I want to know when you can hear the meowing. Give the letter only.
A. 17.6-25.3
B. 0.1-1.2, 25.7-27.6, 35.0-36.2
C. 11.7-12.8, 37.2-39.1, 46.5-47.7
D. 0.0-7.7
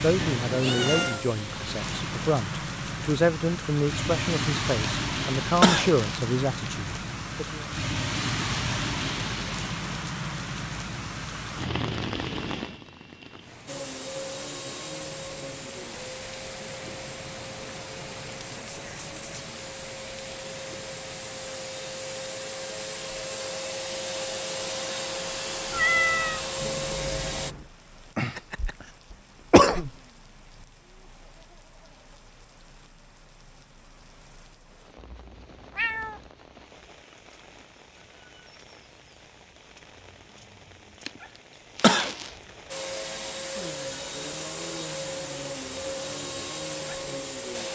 B.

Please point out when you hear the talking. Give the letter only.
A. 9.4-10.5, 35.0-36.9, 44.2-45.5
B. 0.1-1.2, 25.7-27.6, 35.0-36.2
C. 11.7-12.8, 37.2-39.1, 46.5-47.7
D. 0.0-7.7
D.